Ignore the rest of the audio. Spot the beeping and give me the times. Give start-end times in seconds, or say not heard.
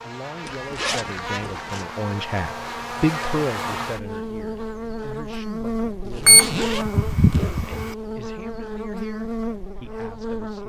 6.2-7.9.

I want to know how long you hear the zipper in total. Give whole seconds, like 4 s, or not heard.
3 s.